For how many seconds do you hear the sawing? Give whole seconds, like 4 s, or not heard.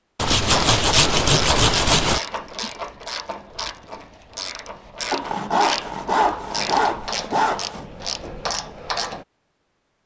5 s.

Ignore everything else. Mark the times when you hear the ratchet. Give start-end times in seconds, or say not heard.
0.5-9.2.